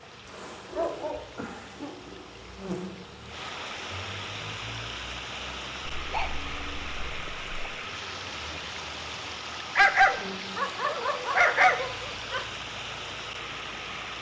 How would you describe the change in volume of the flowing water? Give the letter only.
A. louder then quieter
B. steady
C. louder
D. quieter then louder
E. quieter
C.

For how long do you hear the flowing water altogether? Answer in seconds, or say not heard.
14 s.